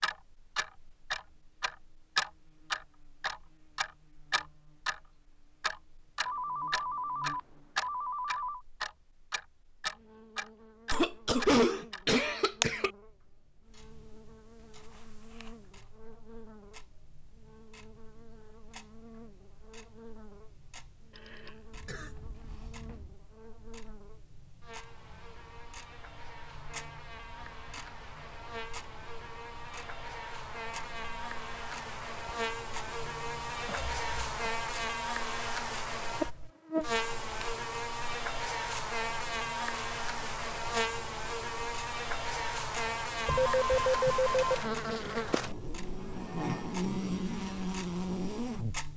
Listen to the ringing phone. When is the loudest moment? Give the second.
44 s.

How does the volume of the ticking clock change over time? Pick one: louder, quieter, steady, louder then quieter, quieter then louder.
quieter then louder.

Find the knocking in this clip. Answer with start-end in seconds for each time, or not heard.
not heard.